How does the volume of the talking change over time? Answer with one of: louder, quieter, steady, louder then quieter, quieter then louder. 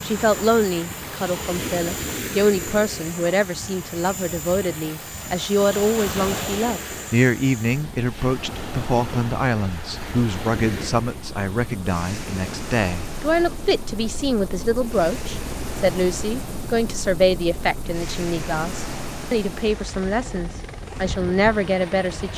steady.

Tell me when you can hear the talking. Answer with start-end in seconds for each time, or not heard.
0.0-22.3.